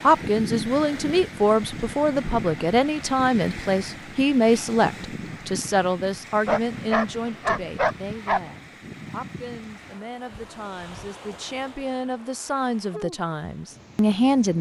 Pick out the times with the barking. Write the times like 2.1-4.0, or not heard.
6.5-8.4.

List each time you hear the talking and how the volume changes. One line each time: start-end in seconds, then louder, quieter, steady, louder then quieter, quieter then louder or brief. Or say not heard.
0.0-14.5 quieter then louder.